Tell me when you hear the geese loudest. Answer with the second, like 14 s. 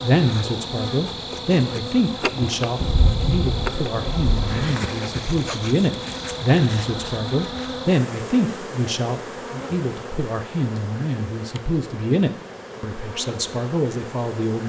3 s.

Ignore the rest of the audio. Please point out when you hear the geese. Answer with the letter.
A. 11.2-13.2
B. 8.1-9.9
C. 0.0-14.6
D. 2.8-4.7
D.